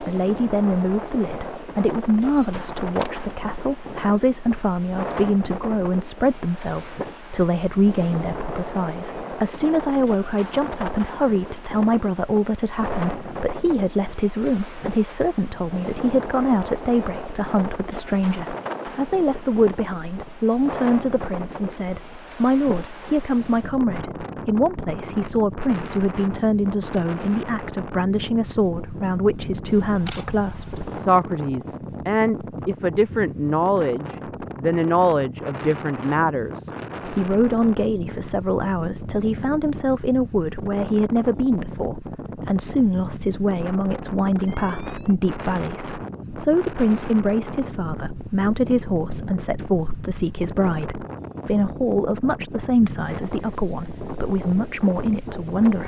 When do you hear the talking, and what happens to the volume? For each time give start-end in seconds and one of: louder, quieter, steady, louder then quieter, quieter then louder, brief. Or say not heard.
0.0-55.8 steady.